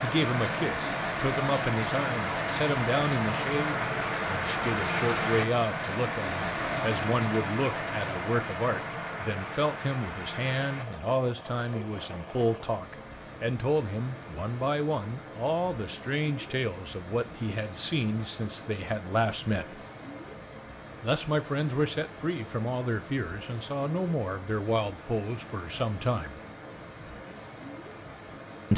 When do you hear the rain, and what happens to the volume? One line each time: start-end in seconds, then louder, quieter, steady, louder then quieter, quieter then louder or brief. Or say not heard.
0.0-28.7 quieter.